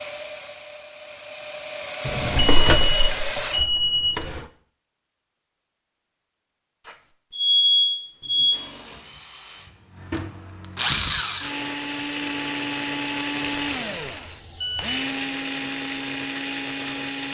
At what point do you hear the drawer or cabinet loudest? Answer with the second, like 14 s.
3 s.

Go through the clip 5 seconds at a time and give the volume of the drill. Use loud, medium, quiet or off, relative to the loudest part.
loud, quiet, loud, loud.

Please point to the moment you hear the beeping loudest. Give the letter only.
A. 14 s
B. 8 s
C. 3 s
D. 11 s
B.